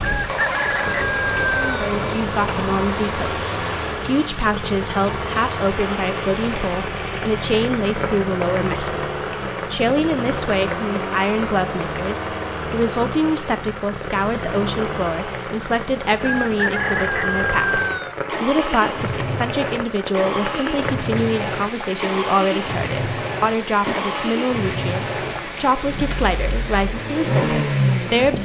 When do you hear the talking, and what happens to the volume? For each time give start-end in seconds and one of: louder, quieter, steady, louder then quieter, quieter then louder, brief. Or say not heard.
1.5-28.4 steady.